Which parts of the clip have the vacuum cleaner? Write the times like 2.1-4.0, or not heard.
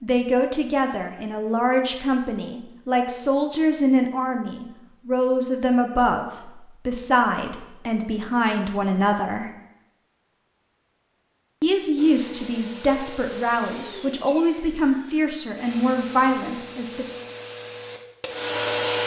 11.9-19.0.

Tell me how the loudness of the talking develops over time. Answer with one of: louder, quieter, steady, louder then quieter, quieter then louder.
steady.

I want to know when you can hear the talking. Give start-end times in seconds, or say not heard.
0.0-9.5, 11.6-17.1.